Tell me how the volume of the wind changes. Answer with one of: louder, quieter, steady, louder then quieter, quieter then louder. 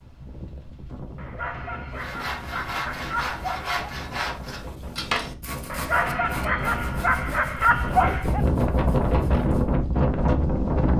louder.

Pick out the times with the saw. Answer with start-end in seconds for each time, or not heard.
1.9-9.8.